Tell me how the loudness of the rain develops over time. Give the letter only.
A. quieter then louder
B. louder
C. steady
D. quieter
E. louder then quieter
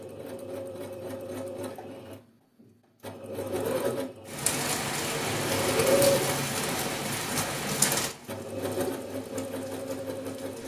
D.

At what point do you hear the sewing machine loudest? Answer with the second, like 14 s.
6 s.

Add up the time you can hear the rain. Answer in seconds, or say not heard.
6 s.